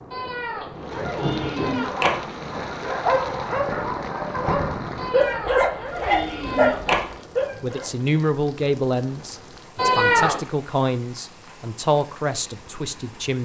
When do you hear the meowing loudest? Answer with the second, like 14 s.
10 s.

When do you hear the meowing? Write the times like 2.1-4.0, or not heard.
0.1-2.4, 5.0-7.2, 9.8-10.4.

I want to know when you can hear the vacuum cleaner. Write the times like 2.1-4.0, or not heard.
not heard.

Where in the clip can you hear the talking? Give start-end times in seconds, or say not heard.
7.6-13.4.